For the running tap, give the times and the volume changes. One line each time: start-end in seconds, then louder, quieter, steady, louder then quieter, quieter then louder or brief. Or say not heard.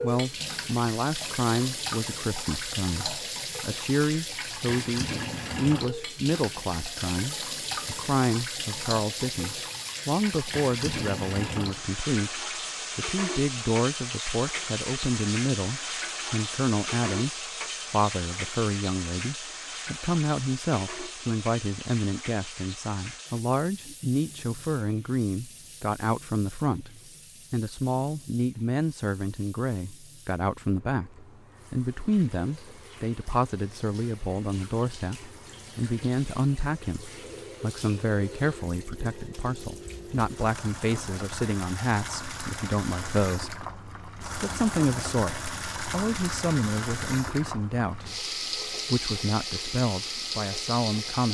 0.0-51.2 quieter then louder.